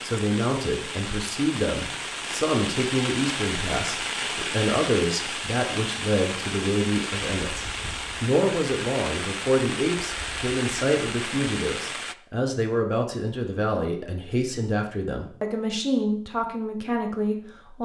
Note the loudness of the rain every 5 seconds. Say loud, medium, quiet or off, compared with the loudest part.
loud, loud, loud, off.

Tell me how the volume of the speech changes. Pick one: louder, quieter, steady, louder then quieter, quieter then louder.
steady.